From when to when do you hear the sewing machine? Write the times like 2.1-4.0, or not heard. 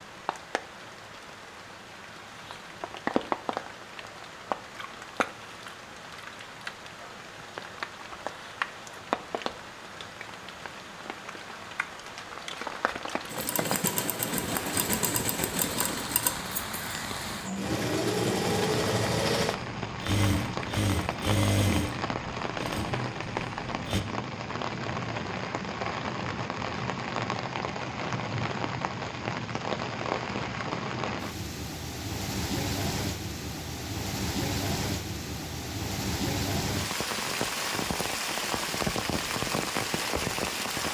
13.3-24.0.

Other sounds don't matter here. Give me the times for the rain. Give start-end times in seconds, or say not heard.
0.0-40.8.